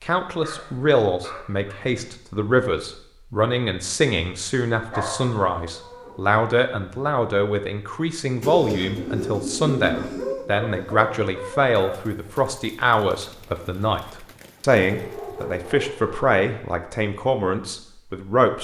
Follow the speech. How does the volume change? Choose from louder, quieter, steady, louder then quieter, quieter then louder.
steady.